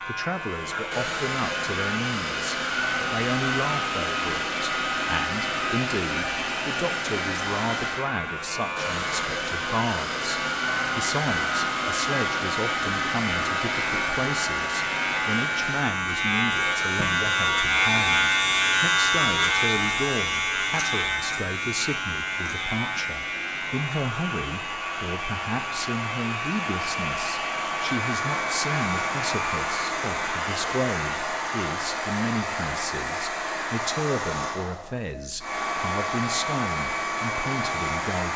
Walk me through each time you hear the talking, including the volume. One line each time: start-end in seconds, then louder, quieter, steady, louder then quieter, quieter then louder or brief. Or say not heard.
0.1-38.3 steady.